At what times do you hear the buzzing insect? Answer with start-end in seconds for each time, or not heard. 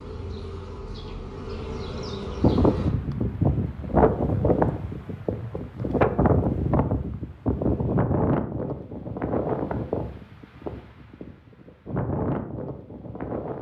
0.0-2.9.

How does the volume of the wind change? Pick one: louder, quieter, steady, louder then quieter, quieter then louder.
quieter.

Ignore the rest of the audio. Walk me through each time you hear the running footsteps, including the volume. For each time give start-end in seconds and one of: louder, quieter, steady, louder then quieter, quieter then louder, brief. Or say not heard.
not heard.